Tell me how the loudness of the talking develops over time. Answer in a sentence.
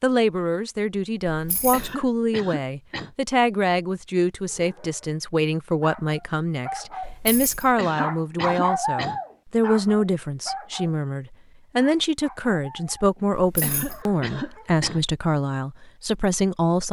The volume of the talking stays about the same.